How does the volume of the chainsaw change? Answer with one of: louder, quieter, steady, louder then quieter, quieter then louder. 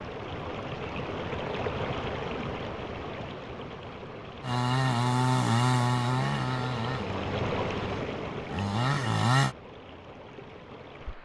quieter then louder.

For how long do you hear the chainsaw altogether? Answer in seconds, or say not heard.
5 s.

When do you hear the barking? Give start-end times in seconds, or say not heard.
not heard.